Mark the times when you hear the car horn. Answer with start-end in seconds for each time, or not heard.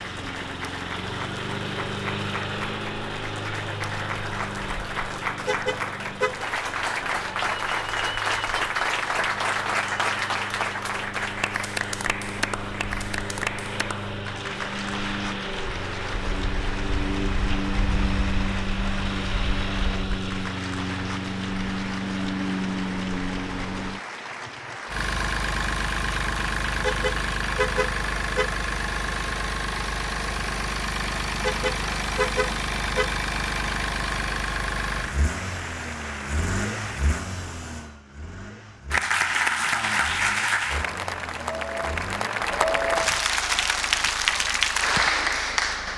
5.5-6.5, 26.8-28.5, 31.4-33.1.